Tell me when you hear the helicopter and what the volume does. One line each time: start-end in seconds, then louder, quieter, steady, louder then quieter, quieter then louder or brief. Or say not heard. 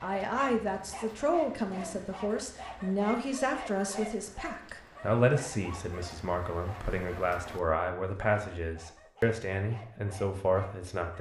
not heard.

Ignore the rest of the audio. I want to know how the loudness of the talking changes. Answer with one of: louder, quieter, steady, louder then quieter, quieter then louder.
steady.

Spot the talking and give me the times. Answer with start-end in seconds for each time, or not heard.
0.0-11.1.